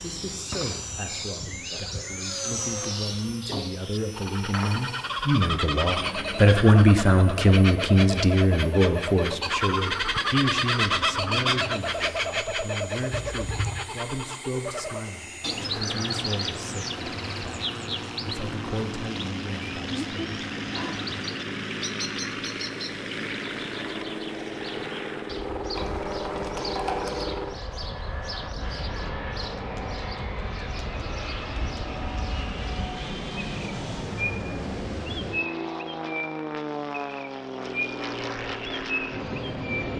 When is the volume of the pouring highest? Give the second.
27 s.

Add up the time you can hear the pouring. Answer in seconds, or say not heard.
2 s.